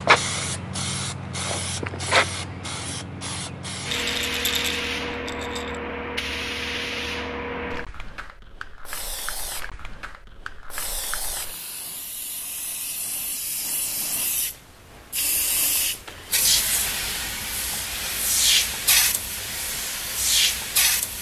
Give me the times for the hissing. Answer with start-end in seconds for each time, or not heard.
0.0-21.1.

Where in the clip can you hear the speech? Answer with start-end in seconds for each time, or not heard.
not heard.